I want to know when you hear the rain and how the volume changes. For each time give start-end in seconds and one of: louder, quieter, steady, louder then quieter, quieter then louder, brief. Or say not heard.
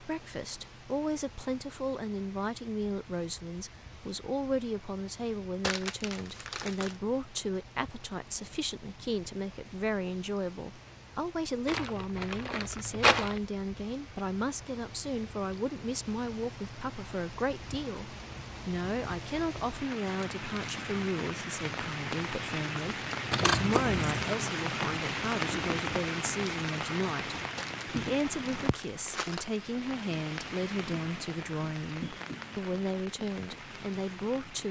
0.0-34.6 louder then quieter.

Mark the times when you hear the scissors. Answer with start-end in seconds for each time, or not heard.
23.3-24.3.